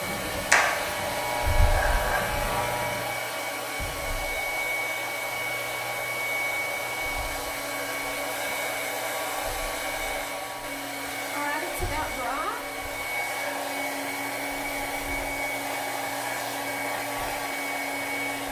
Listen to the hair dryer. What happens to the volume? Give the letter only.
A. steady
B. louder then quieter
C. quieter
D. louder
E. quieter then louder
A.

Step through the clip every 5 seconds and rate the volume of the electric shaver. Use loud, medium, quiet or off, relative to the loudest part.
loud, quiet, quiet, quiet.